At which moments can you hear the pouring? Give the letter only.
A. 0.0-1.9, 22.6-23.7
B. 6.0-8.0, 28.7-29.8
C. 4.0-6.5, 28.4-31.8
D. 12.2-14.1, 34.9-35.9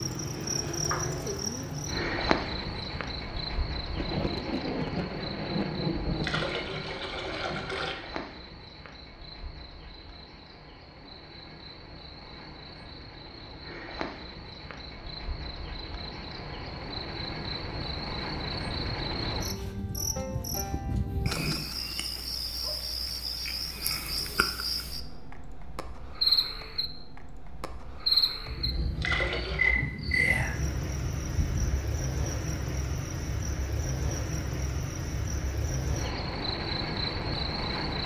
B.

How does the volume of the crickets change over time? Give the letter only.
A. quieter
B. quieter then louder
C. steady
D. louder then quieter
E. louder
B.